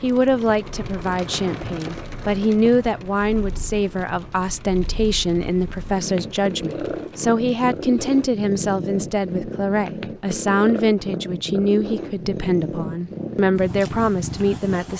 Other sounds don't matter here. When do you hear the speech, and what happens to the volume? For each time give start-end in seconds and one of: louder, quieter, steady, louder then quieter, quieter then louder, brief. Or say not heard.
0.0-14.9 steady.